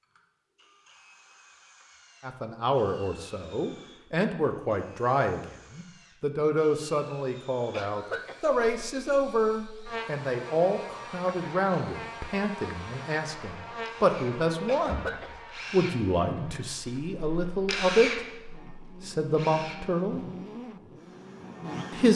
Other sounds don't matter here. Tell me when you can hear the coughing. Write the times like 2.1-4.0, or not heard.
7.7-8.8, 14.7-15.3.